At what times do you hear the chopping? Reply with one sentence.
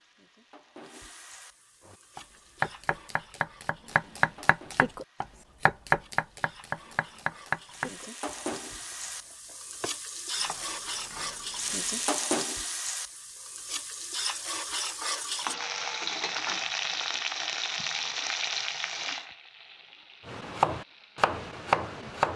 The chopping can be heard from 1.9 to 12.1 s and from 20.2 to 22.3 s.